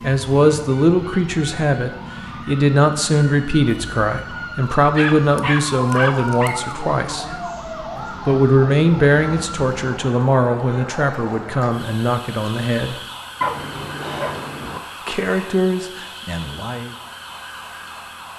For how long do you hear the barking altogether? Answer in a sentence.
The barking can be heard for 3 seconds in total.